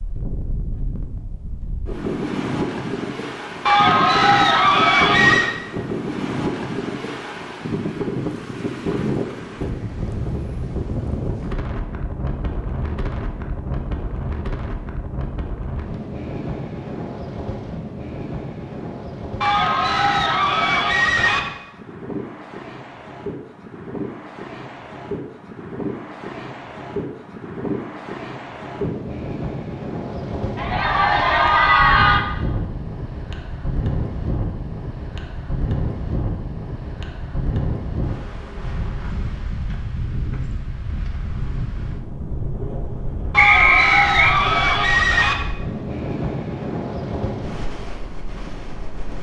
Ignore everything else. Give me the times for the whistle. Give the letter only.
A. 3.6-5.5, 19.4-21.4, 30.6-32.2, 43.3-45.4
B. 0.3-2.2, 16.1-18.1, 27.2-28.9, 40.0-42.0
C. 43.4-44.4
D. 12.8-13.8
C.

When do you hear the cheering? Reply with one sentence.
The cheering can be heard from 3.6 to 5.5 s, from 19.4 to 21.4 s, from 30.6 to 32.2 s and from 43.3 to 45.4 s.